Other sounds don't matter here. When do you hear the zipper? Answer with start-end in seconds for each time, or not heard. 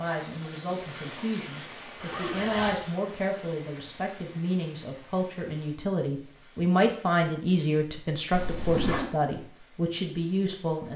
2.0-2.8, 8.3-9.1.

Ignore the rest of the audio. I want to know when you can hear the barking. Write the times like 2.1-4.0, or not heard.
not heard.